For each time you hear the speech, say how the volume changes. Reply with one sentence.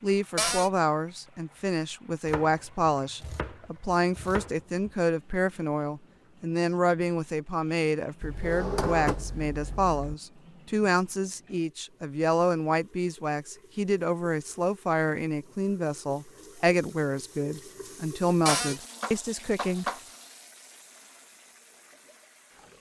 You can hear the speech from 0.0 to 19.9 s, at a steady volume.